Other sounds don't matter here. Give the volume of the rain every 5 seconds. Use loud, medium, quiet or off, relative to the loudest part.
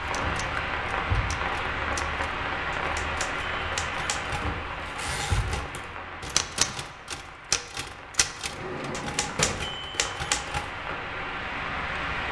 loud, medium, loud.